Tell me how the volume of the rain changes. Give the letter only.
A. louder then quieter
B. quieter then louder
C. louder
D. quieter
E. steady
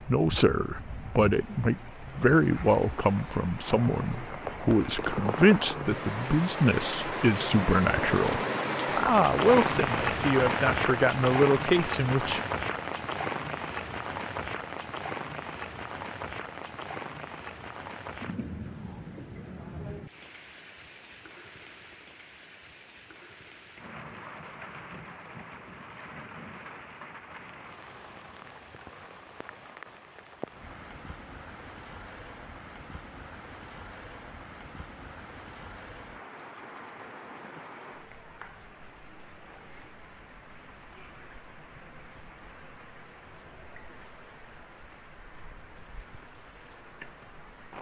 D.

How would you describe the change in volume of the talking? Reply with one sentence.
The volume of the talking stays about the same.